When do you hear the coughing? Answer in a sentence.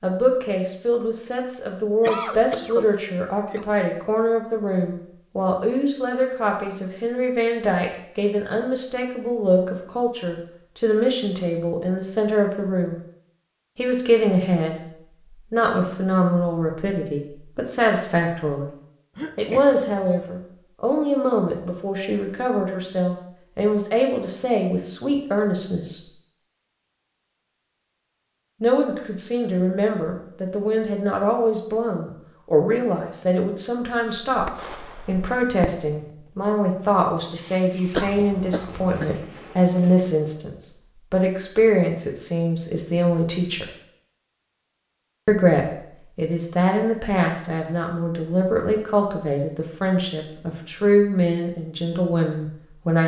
The coughing can be heard from 2.0 to 3.6 s, from 19.1 to 20.4 s and from 38.0 to 39.1 s.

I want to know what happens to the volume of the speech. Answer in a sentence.
The volume of the speech stays about the same.